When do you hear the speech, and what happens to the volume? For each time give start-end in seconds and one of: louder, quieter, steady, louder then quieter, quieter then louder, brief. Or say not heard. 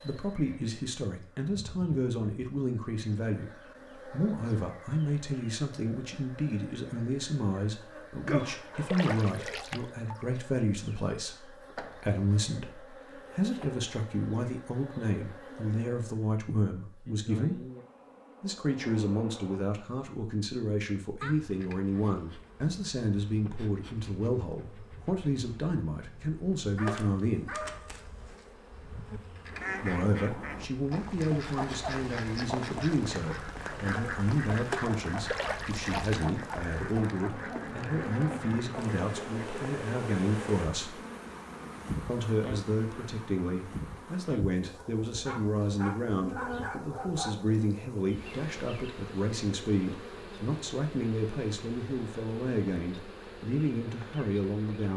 0.0-17.6 steady
18.4-27.6 steady
29.8-41.0 steady
42.0-54.9 steady.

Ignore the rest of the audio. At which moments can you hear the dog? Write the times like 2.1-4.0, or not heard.
8.2-9.7, 26.8-28.4, 44.8-47.5.